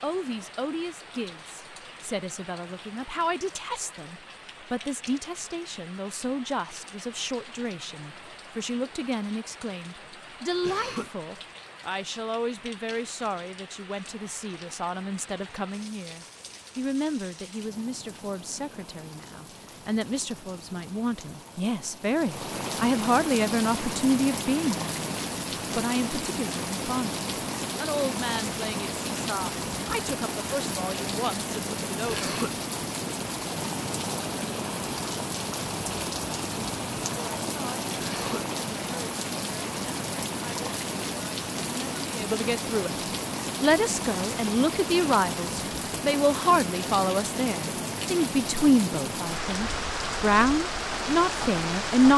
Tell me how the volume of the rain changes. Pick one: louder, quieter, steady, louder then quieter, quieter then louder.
louder.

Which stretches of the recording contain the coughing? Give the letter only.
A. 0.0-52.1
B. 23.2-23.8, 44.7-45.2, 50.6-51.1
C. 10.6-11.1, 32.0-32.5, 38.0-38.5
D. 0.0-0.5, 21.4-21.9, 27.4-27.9
C.